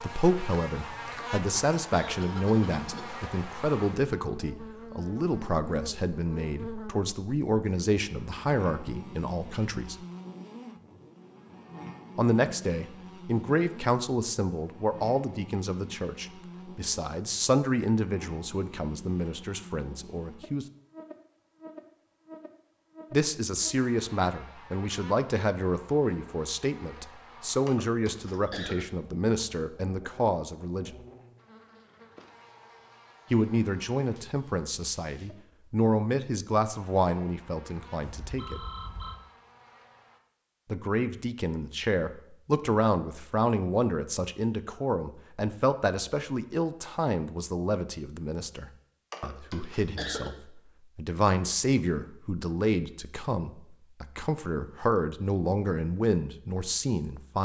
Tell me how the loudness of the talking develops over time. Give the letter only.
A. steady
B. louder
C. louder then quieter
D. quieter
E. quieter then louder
A.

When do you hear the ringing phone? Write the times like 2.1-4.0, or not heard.
38.0-39.2.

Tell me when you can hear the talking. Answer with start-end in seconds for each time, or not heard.
0.0-9.9, 12.2-20.6, 23.1-31.0, 33.3-38.6, 40.6-57.4.